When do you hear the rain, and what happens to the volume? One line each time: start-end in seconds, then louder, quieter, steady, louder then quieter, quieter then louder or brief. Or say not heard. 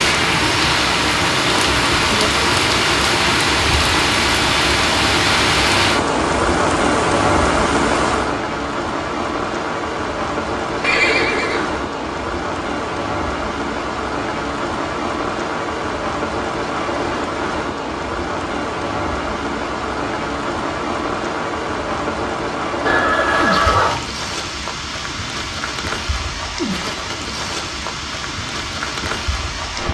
0.0-29.9 quieter.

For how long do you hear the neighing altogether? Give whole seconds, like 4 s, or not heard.
2 s.